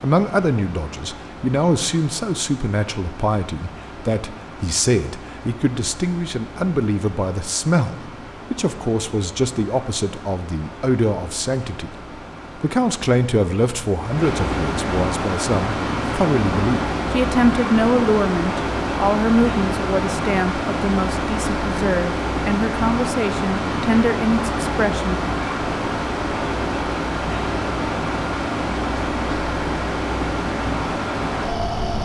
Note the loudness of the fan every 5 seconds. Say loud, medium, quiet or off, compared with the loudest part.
quiet, quiet, medium, loud, loud, loud, loud.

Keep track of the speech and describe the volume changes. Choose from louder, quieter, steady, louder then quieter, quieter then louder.
steady.